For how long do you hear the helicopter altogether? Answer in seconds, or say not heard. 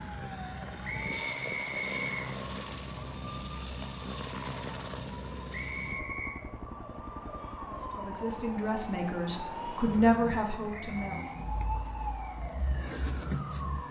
14 s.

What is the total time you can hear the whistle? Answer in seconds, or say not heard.
3 s.